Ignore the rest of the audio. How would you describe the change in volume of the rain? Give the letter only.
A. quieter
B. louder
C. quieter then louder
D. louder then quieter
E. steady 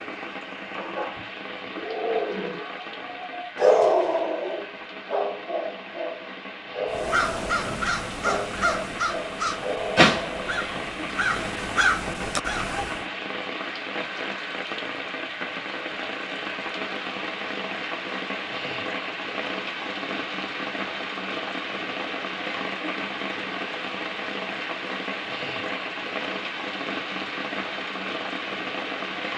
B.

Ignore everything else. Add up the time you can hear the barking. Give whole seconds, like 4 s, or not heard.
10 s.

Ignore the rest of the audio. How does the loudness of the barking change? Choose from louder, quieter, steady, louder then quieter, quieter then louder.
louder then quieter.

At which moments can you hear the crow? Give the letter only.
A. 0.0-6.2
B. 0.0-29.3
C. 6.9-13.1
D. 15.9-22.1
C.